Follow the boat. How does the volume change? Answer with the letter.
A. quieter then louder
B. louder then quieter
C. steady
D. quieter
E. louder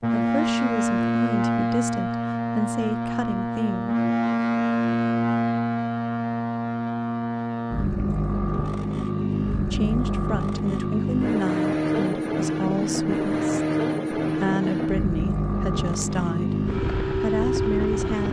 C.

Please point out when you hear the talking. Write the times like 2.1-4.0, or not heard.
0.0-4.0, 9.7-18.2.